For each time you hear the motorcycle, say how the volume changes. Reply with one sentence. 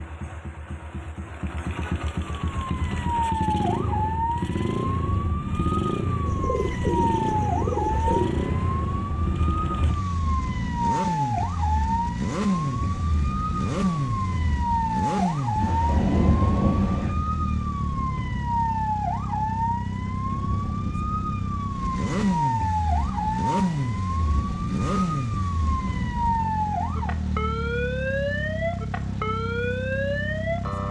You can hear the motorcycle from 0.0 to 30.8 s, at a steady volume.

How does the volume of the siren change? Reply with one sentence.
The loudness of the siren stays about the same.